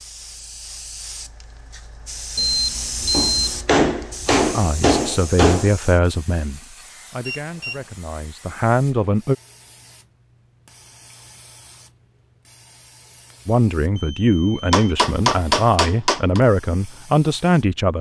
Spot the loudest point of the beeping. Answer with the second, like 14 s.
3 s.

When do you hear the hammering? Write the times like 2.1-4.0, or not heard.
3.0-5.7, 14.7-16.4.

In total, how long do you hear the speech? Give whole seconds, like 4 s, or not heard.
9 s.